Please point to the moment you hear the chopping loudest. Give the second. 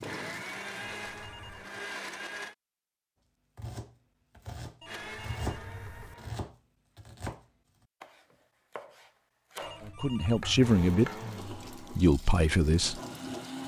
5 s.